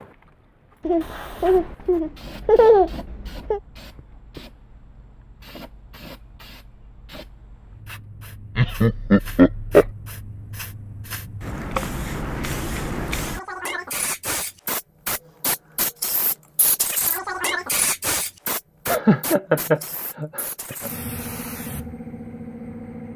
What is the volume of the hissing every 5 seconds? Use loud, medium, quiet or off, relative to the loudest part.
quiet, quiet, loud, loud, medium.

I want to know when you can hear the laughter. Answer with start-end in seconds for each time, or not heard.
0.8-3.6, 8.6-9.9, 18.9-20.9.